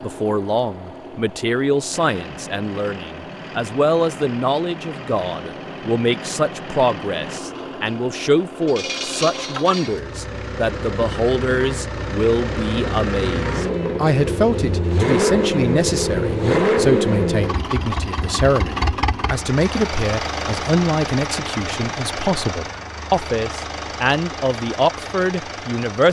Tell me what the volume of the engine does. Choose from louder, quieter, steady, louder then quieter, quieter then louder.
louder then quieter.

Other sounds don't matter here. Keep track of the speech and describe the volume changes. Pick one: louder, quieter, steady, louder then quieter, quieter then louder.
steady.